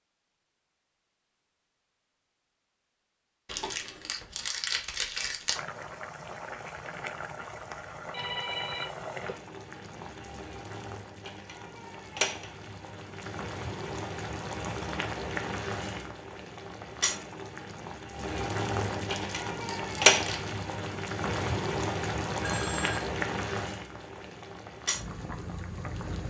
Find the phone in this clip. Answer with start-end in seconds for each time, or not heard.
8.1-9.2, 22.4-23.1.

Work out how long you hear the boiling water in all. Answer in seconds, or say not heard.
21 s.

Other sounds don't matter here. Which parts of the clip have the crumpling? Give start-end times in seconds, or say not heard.
3.5-5.6, 19.1-20.5.